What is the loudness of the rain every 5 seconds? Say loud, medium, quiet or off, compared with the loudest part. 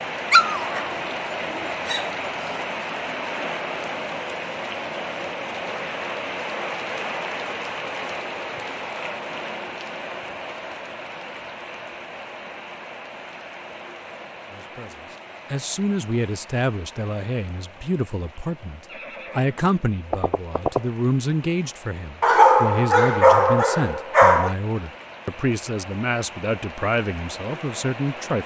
loud, loud, medium, quiet, quiet, medium.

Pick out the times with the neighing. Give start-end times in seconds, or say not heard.
18.9-20.9.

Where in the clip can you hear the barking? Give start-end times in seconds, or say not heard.
0.3-2.6, 22.2-24.6.